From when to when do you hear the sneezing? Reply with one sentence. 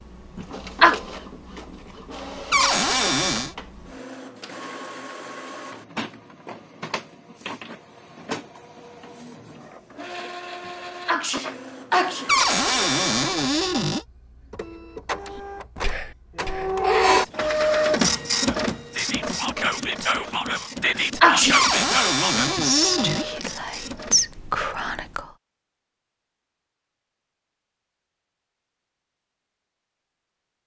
The sneezing can be heard from 0.3 to 1.0 s, from 10.7 to 12.3 s and from 20.8 to 21.7 s.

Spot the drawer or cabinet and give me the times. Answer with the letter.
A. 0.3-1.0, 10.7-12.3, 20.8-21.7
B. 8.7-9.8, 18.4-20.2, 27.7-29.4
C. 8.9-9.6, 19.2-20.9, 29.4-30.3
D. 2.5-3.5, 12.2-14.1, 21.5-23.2
D.